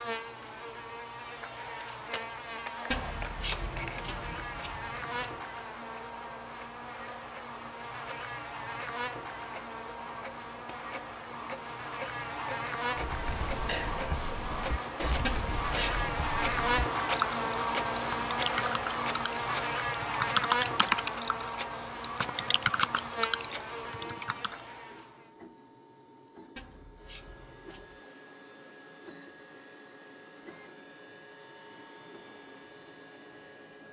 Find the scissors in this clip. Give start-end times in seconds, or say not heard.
2.9-5.3, 15.2-16.1, 26.6-28.0.